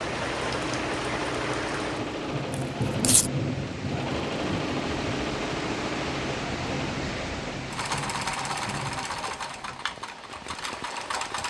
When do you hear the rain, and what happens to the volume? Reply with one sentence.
The rain can be heard from 0.0 to 11.4 s, getting quieter.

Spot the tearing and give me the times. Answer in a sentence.
The tearing can be heard from 2.5 to 3.3 s.